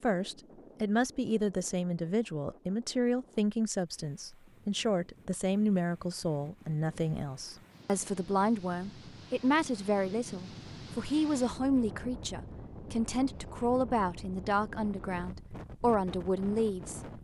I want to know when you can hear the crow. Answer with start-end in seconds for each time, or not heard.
not heard.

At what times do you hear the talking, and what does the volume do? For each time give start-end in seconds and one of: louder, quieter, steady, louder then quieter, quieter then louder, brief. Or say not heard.
0.0-17.0 steady.